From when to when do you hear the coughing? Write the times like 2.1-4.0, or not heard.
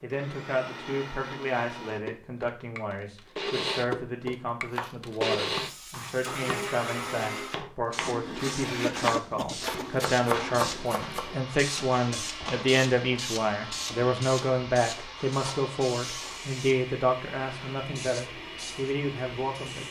8.6-9.9.